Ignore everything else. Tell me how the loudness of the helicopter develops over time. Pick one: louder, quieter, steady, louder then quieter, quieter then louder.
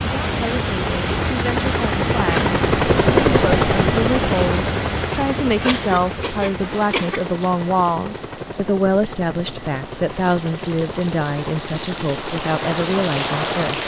quieter.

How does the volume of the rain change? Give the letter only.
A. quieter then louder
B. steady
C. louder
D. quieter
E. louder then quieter
A.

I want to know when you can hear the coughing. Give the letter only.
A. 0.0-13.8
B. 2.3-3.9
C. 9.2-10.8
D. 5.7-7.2
D.